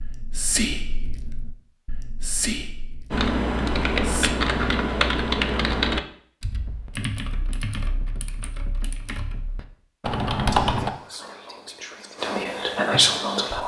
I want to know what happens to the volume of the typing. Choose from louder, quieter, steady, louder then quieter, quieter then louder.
quieter then louder.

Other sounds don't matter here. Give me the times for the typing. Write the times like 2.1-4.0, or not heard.
3.1-10.9.